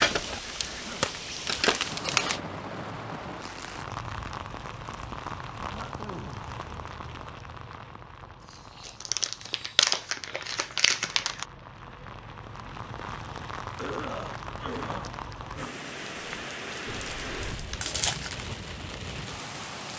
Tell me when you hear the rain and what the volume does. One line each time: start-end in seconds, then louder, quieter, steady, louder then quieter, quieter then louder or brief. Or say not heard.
0.0-19.9 quieter then louder.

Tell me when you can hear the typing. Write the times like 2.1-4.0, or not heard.
16.1-17.8.